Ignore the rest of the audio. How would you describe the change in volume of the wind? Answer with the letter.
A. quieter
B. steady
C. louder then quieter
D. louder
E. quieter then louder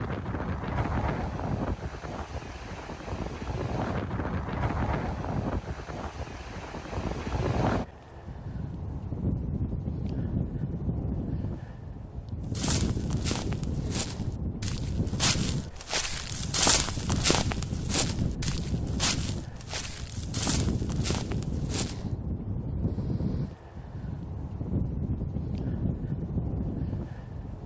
B.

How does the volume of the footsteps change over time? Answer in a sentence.
The loudness of the footsteps goes up, then down.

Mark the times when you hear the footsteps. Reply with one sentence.
The footsteps can be heard from 12.5 to 22.1 s.